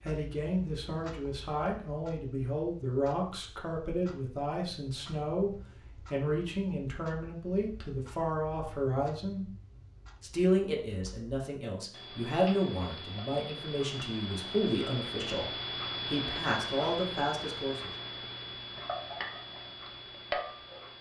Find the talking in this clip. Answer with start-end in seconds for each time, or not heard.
0.1-9.4, 10.2-15.4, 16.1-17.9.